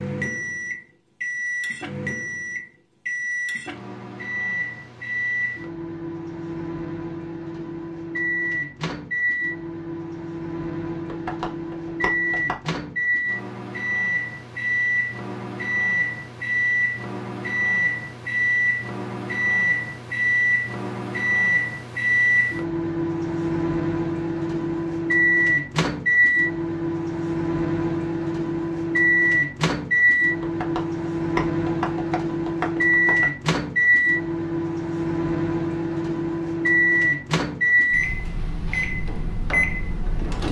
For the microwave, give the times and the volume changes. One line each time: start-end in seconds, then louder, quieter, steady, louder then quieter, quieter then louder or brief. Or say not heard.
0.0-40.4 louder.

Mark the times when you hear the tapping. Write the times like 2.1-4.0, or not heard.
11.1-12.7, 30.4-33.3.